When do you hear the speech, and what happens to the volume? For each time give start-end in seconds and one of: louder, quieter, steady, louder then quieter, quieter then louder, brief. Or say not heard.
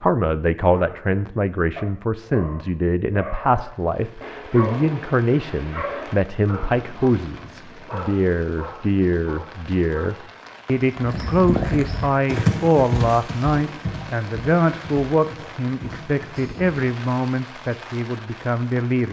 0.0-19.0 steady.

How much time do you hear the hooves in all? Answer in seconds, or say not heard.
6 s.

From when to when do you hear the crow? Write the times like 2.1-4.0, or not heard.
not heard.